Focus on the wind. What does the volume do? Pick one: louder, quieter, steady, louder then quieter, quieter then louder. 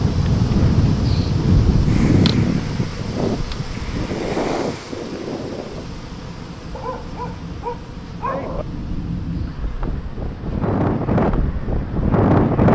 quieter then louder.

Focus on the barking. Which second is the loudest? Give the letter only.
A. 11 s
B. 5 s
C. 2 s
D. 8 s
D.